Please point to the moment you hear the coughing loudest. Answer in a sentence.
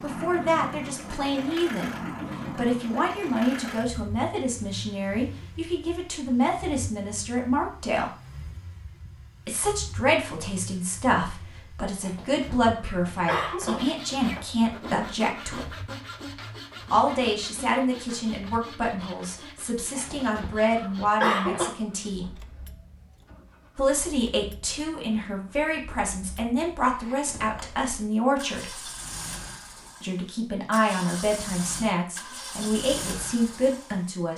The volume of the coughing peaks at 21 seconds.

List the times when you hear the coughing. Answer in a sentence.
You can hear the coughing from 12.0 to 13.8 s and from 19.9 to 21.7 s.